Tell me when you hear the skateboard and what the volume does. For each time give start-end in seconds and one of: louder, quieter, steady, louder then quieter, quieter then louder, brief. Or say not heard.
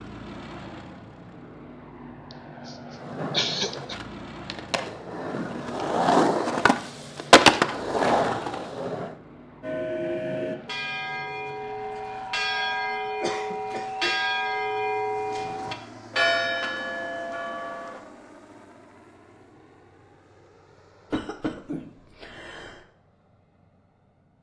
3.0-9.2 louder then quieter.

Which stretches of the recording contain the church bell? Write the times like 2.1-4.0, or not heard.
9.6-18.0.